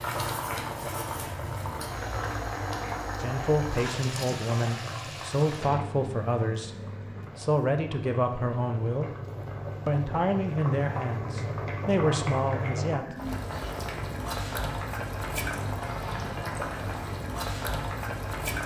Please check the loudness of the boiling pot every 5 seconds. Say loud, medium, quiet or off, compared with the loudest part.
loud, medium, loud, loud.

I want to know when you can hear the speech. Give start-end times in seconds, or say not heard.
3.2-9.2, 9.8-13.2.